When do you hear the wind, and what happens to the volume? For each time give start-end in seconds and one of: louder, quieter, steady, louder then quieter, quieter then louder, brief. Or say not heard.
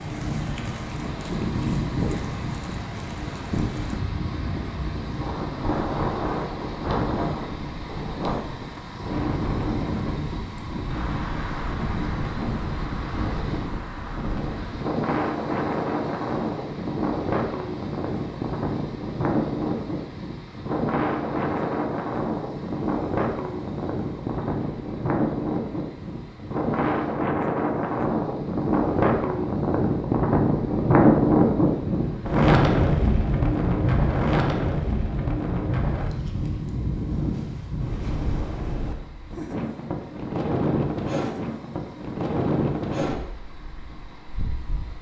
0.0-44.9 louder then quieter.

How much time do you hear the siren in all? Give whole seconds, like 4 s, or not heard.
not heard.